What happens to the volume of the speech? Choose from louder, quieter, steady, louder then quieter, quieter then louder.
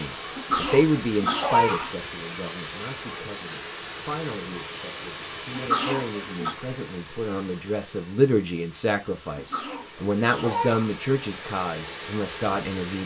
quieter then louder.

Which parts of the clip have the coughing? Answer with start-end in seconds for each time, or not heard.
0.3-1.9, 5.5-6.5, 9.3-10.9.